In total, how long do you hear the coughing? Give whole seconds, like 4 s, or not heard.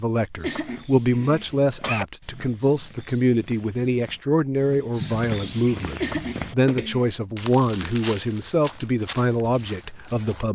3 s.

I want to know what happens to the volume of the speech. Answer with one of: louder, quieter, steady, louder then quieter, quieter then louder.
steady.